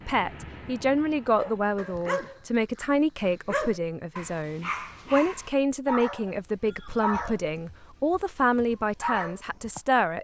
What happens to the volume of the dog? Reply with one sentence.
The volume of the dog stays about the same.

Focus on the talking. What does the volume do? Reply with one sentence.
The loudness of the talking stays about the same.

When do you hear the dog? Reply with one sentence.
The dog can be heard from 1.4 to 9.8 s.